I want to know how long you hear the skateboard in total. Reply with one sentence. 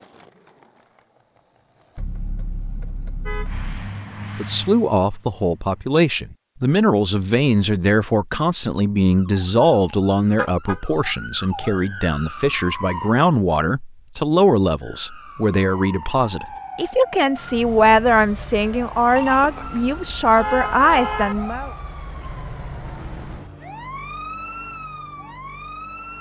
You can hear the skateboard for 2 seconds altogether.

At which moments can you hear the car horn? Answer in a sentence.
You can hear the car horn from 1.9 to 3.9 s, from 10.3 to 10.8 s and from 20.3 to 21.4 s.